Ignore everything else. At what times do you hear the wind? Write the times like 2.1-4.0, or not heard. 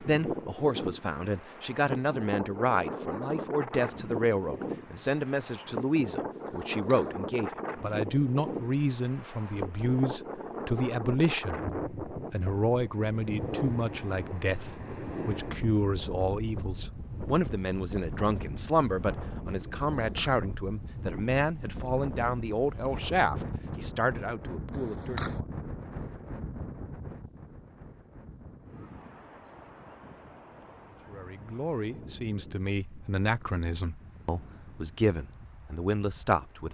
0.0-36.7.